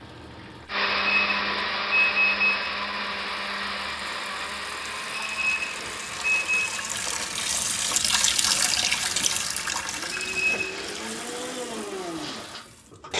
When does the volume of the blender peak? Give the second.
1 s.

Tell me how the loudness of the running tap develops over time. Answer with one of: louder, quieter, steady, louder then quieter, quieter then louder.
louder then quieter.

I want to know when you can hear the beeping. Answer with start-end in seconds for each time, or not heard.
0.8-2.6, 5.2-6.8, 10.1-10.8.